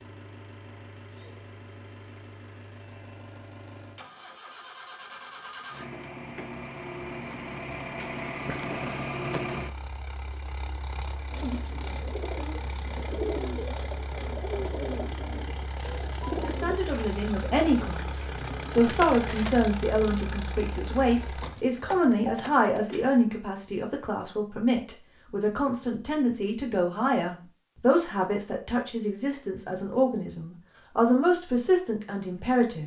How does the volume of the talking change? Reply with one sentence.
The loudness of the talking stays about the same.